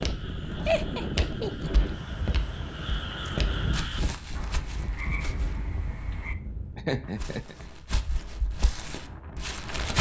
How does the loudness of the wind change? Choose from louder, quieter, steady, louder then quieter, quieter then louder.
quieter.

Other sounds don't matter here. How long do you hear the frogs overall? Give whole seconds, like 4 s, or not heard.
6 s.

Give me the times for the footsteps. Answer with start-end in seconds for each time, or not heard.
0.0-5.6, 7.2-9.9.